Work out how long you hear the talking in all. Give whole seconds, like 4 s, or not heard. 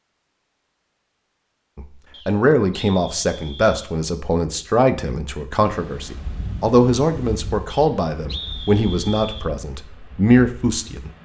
9 s.